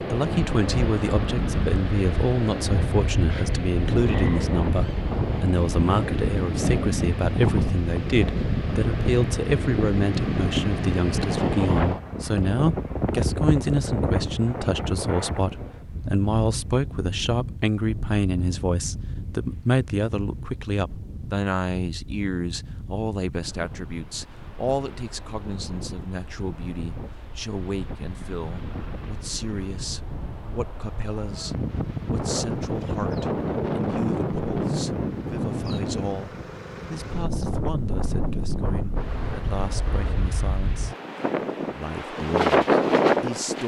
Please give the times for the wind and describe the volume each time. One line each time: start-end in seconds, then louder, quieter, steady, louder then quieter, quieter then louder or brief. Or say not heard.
0.0-43.6 quieter then louder.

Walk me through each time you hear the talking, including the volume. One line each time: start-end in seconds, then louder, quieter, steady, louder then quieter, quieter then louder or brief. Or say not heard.
0.0-40.9 quieter
41.7-43.6 brief.